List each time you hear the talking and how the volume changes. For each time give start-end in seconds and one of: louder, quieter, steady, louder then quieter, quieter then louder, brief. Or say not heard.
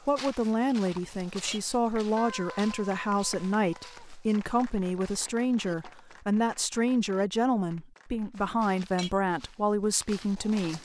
0.1-10.7 steady.